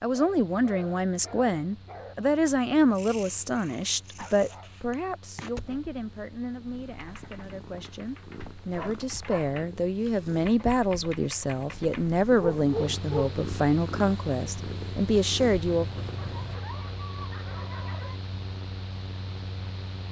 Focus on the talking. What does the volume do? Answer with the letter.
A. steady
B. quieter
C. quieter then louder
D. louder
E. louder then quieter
C.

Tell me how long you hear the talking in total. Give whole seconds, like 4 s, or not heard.
16 s.